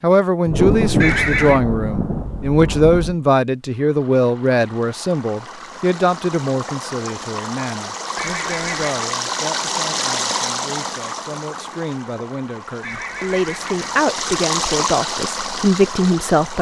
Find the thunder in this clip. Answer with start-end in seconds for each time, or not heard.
0.5-3.1.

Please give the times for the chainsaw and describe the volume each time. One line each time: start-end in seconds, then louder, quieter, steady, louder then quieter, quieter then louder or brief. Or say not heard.
not heard.